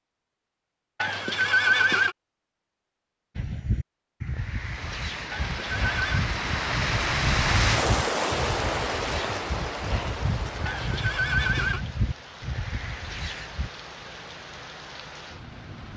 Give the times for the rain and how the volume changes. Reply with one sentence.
The rain can be heard from 4.2 to 15.9 s, getting louder then quieter.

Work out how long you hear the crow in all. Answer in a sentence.
You can hear the crow for 10 seconds altogether.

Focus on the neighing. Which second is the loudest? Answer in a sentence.
The loudest moment of the neighing is at 2 seconds.